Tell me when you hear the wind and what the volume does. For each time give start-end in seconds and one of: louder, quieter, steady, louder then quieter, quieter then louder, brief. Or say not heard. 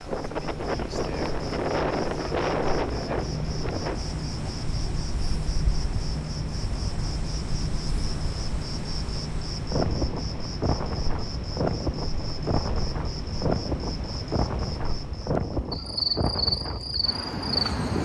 0.0-18.0 quieter then louder.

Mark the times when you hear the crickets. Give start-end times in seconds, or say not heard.
0.0-18.0.